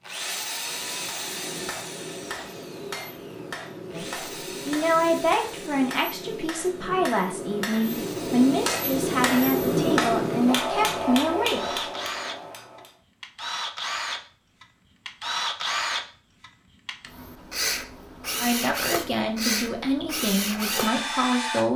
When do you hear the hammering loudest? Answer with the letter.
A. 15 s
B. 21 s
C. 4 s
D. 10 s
D.